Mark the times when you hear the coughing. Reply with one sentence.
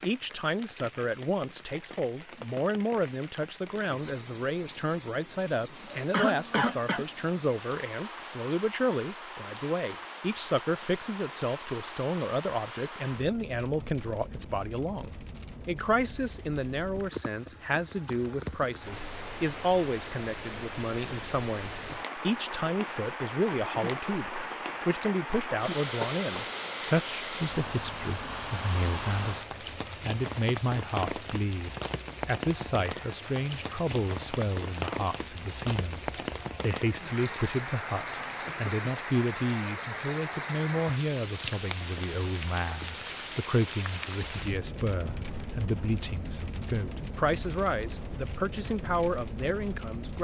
The coughing can be heard from 6.1 to 7.0 s and from 38.4 to 38.9 s.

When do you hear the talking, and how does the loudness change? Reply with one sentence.
You can hear the talking from 0.0 to 50.1 s, at a steady volume.